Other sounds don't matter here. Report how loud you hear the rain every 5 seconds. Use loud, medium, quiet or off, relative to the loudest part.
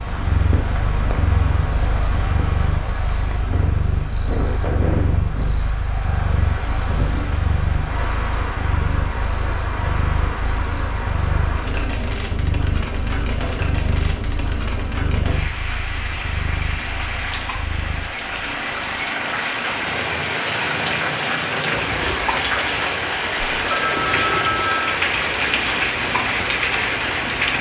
medium, medium, medium, medium, loud, loud.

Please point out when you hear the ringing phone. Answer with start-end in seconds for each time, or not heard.
23.6-24.9.